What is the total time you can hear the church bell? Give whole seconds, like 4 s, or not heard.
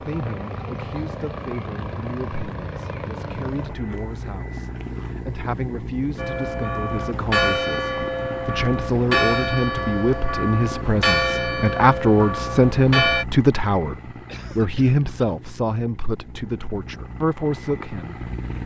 7 s.